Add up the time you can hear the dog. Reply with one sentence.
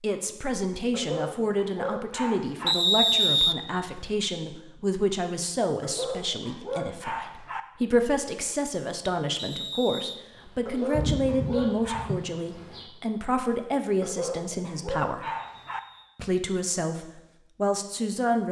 You can hear the dog for 7 seconds altogether.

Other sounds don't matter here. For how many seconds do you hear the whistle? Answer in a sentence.
The whistle can be heard for 3 seconds in total.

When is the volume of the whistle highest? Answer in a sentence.
The volume of the whistle peaks at 3 seconds.